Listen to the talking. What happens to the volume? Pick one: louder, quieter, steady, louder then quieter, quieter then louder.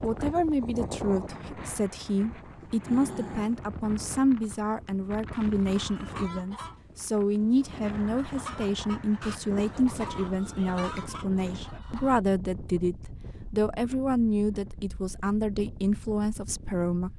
steady.